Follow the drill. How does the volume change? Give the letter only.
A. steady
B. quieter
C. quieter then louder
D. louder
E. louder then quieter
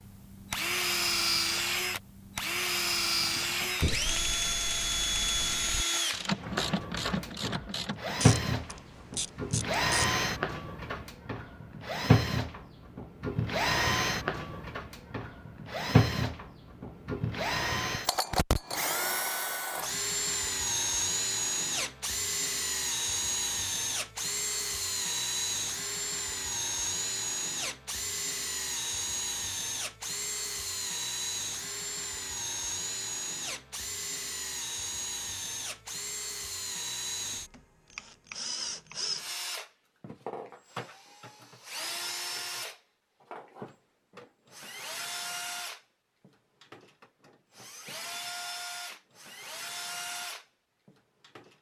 B.